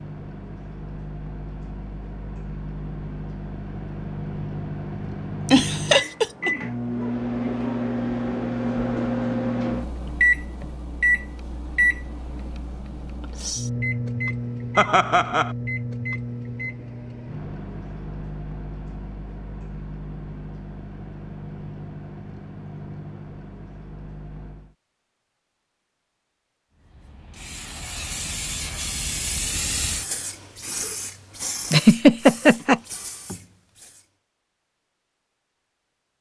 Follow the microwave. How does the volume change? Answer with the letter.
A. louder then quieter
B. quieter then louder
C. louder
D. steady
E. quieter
A.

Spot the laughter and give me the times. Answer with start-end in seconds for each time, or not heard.
5.5-6.5, 14.8-15.5, 31.7-32.8.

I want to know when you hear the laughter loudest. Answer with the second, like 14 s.
32 s.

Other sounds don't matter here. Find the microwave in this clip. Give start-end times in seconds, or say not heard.
0.0-24.8.